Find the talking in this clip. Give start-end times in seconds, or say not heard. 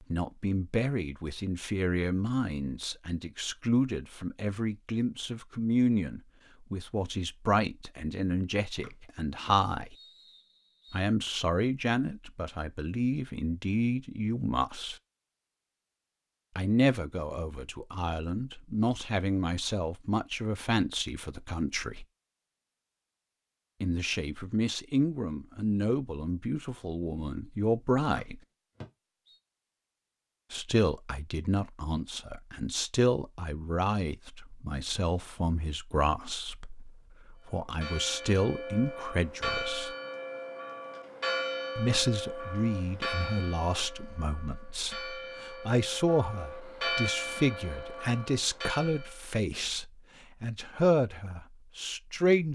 0.1-9.9, 10.9-14.9, 16.6-22.1, 23.8-28.4, 30.5-39.9, 41.8-52.5.